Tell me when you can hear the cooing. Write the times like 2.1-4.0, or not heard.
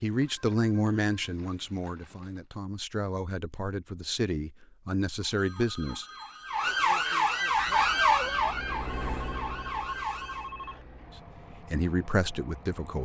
not heard.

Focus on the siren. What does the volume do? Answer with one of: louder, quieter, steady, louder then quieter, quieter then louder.
louder then quieter.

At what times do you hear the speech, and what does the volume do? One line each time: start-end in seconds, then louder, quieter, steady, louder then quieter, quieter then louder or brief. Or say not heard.
0.0-6.0 quieter then louder
11.5-13.0 brief.